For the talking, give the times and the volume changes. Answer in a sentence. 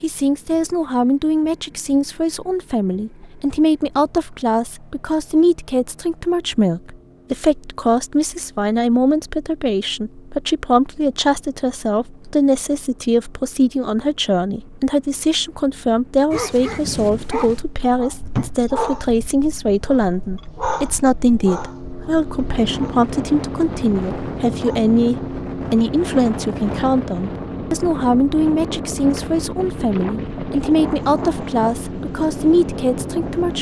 You can hear the talking from 0.0 to 33.5 s, at a steady volume.